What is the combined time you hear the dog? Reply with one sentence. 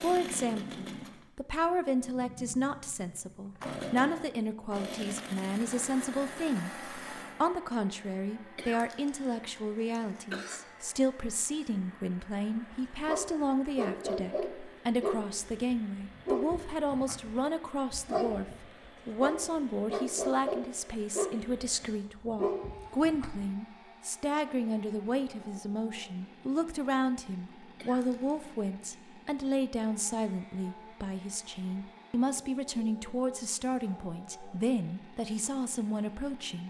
You can hear the dog for 10 seconds altogether.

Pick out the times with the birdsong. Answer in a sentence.
The birdsong can't be heard in this clip.